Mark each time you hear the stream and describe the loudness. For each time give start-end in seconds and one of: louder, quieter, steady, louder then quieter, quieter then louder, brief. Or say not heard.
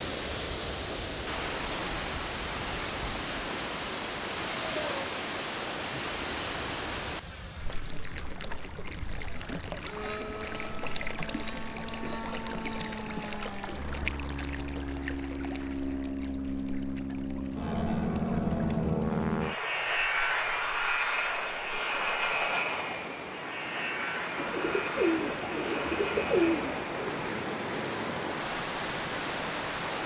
0.0-30.0 quieter then louder.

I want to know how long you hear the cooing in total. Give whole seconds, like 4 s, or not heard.
3 s.